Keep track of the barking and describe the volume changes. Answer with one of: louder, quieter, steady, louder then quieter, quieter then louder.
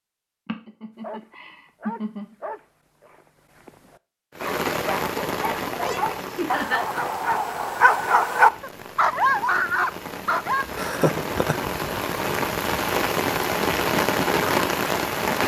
louder.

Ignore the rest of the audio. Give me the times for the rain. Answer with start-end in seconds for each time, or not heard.
4.3-15.4.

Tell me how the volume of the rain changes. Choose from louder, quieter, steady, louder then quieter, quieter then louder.
quieter then louder.